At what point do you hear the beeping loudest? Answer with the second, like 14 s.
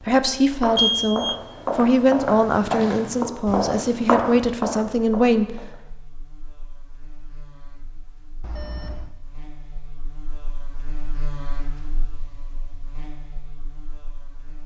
1 s.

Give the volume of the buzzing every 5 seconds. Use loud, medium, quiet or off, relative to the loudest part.
off, medium, loud.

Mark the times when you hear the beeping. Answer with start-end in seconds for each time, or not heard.
0.8-1.4, 8.4-9.2.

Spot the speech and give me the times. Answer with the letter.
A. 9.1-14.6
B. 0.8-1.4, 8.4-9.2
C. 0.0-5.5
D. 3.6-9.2
C.